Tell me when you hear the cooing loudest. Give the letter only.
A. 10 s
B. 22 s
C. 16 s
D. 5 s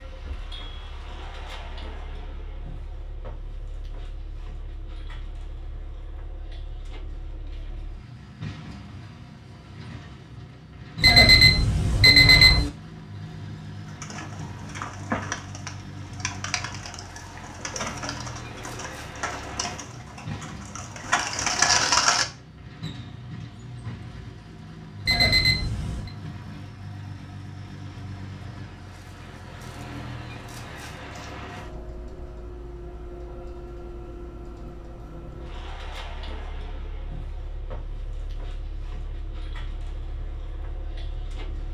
B.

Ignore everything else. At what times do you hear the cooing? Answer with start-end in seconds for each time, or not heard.
13.8-22.2.